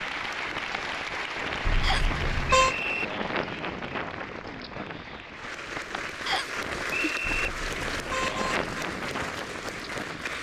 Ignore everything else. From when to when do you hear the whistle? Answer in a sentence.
The whistle can be heard from 1.8 to 3.0 s and from 6.2 to 7.5 s.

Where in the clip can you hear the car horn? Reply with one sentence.
You can hear the car horn from 1.6 to 2.8 s and from 7.2 to 8.7 s.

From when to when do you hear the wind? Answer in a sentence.
You can hear the wind from 0.0 to 10.3 s.